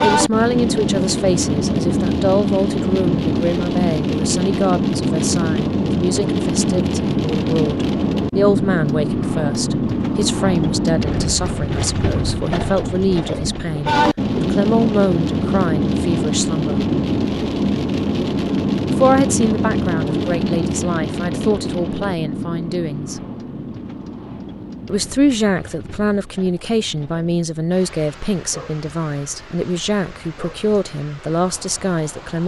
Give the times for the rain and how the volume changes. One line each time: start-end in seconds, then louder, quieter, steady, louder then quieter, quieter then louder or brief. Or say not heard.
0.0-32.4 quieter.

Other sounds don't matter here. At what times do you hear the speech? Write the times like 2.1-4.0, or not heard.
0.0-16.9, 18.9-23.2, 24.9-32.4.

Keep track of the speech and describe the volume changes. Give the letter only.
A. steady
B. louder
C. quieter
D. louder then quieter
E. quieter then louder
A.